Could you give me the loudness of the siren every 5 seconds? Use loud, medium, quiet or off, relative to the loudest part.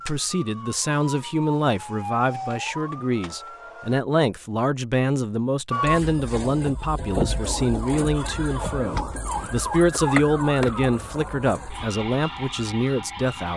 medium, loud, loud.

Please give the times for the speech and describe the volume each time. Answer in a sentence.
The speech can be heard from 0.1 to 13.5 s, at a steady volume.